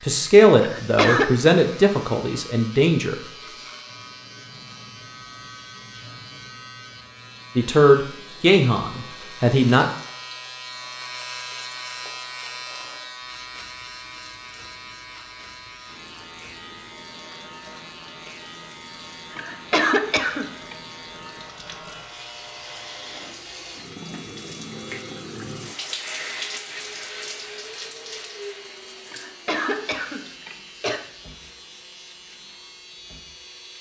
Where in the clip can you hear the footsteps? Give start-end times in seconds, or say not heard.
not heard.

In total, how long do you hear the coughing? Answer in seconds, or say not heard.
4 s.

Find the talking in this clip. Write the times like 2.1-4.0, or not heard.
0.0-3.1, 7.5-9.8.